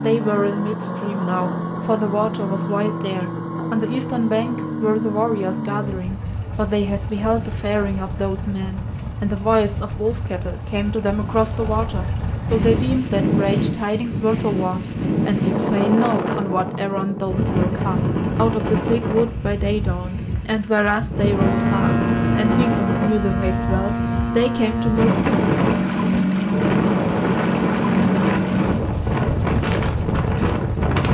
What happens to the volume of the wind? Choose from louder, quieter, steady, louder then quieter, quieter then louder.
steady.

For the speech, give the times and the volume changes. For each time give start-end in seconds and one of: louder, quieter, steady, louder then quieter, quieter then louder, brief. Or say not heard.
0.0-25.1 steady.